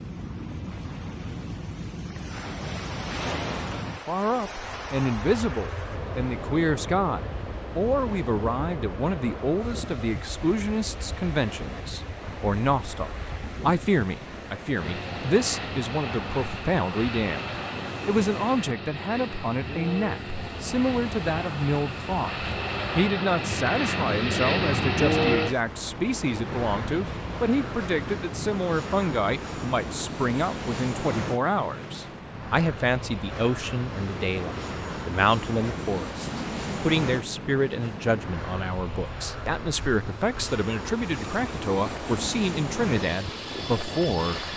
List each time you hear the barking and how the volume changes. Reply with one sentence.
You can't hear the barking here.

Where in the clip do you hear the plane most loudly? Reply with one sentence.
The volume of the plane peaks at 25 seconds.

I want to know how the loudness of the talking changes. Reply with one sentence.
The volume of the talking stays about the same.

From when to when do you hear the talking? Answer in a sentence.
You can hear the talking from 3.7 to 44.5 s.